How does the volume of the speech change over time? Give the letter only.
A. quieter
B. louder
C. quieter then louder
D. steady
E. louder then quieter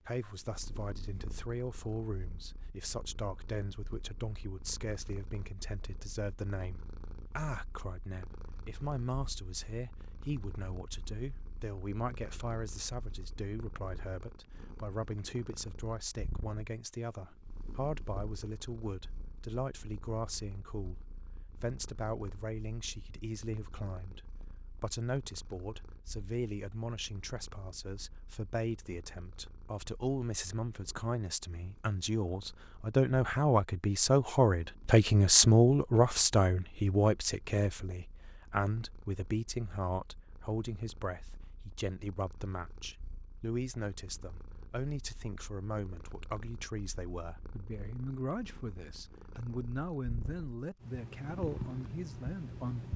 E.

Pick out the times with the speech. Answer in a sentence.
The speech can be heard from 0.1 to 52.9 s.